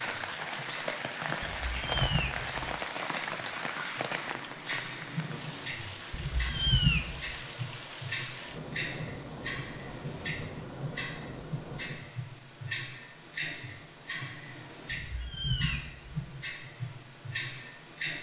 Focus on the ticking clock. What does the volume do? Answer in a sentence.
The volume of the ticking clock goes up.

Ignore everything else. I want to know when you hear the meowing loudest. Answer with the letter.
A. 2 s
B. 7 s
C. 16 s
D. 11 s
B.